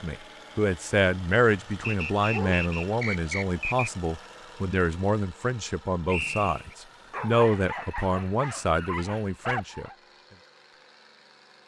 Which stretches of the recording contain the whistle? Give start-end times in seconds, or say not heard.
1.8-3.9, 6.0-6.8.